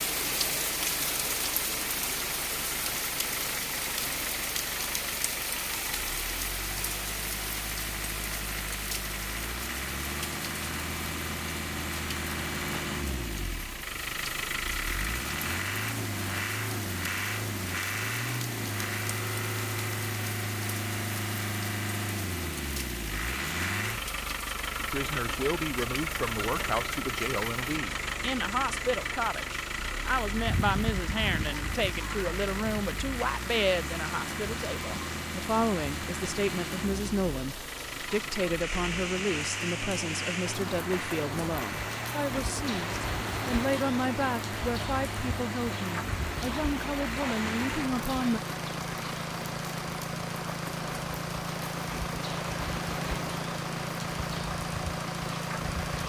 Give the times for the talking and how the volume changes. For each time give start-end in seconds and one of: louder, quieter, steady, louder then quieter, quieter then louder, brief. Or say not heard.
24.8-48.4 steady.